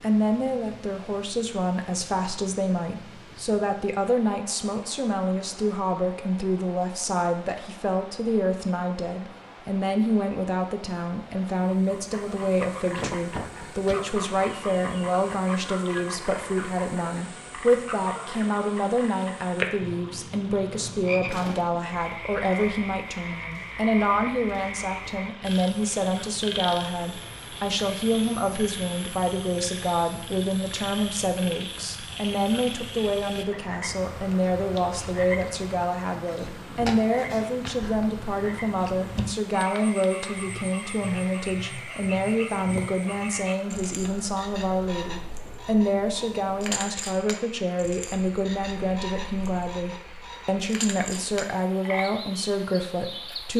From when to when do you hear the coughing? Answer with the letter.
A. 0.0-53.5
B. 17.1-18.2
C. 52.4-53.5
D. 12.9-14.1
D.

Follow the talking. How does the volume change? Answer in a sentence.
The volume of the talking stays about the same.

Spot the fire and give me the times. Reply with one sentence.
You can't hear the fire here.